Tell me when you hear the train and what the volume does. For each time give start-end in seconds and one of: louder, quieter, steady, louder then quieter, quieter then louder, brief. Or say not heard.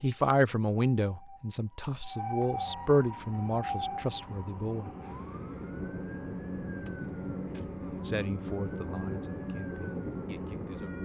3.0-11.0 louder.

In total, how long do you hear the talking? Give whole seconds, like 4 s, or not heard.
8 s.